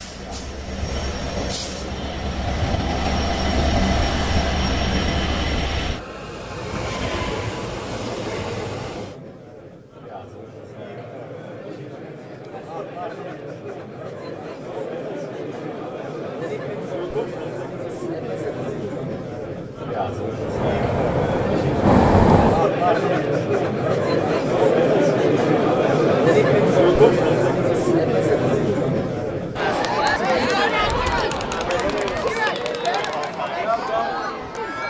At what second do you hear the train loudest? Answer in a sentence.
The volume of the train peaks at 22 seconds.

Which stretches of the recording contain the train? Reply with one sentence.
You can hear the train from 0.0 to 9.2 s and from 20.4 to 22.6 s.